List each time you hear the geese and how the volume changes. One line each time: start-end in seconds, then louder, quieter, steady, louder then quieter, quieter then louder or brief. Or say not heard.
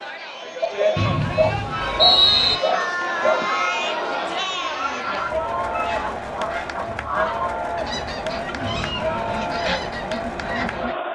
1.7-10.9 steady.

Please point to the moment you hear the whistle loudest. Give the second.
2 s.